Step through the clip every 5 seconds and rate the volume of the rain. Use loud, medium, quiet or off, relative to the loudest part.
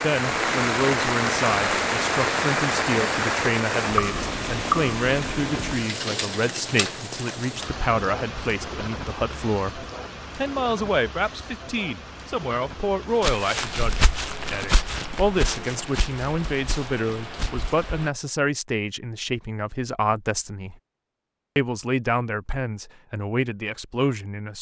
loud, medium, quiet, quiet, off.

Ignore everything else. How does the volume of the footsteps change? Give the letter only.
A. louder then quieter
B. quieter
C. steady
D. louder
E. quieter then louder
B.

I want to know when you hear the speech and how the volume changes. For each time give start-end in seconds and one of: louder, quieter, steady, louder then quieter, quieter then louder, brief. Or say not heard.
0.0-20.8 steady
21.6-24.5 brief.